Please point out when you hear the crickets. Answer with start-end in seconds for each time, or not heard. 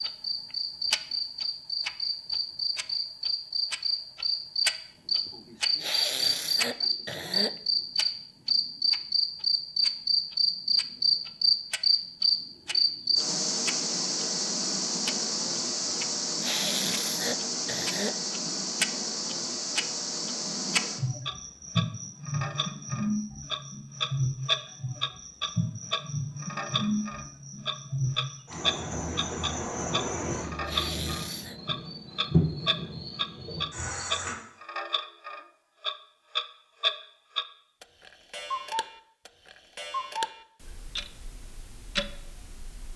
0.0-34.4.